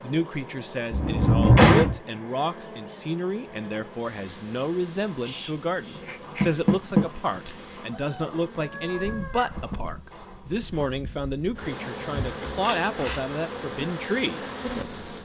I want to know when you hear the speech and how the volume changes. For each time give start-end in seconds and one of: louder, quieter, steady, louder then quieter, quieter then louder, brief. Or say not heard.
0.0-15.1 steady.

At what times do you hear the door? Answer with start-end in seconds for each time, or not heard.
0.9-1.9, 6.4-7.0, 12.1-13.2.